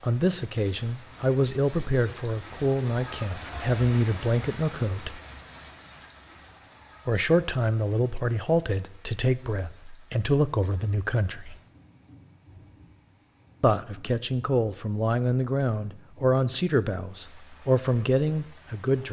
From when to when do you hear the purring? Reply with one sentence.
The purring can't be heard in this clip.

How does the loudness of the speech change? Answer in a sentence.
The loudness of the speech stays about the same.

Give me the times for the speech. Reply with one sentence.
You can hear the speech from 0.0 to 5.2 s, from 7.0 to 11.6 s and from 13.6 to 19.0 s.